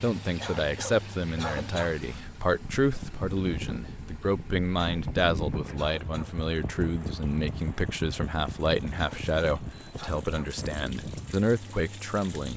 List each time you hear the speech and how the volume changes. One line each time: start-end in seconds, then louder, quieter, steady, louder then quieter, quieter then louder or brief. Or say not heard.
0.0-12.5 steady.